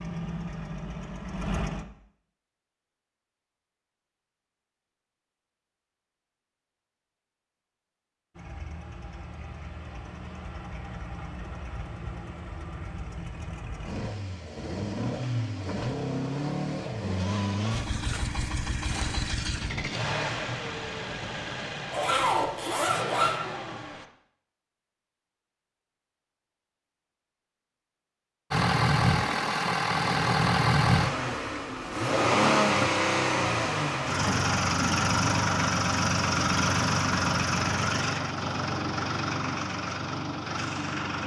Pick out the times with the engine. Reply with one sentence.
The engine can be heard from 0.0 to 1.9 s, from 8.3 to 24.1 s and from 28.5 to 41.2 s.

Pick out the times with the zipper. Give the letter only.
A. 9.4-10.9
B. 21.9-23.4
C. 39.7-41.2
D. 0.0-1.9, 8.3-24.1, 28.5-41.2
B.